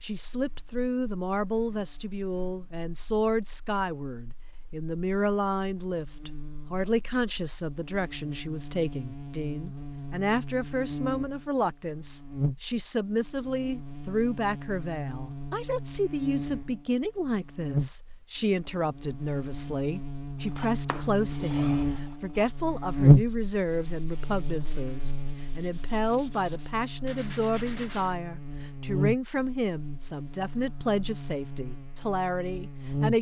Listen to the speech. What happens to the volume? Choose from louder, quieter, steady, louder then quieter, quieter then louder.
steady.